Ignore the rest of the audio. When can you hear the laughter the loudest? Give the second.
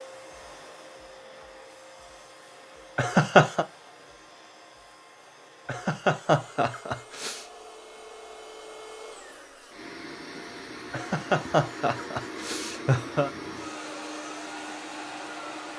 3 s.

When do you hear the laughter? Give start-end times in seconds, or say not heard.
3.0-3.6, 5.7-7.5, 10.9-13.3.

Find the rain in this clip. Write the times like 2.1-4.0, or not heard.
not heard.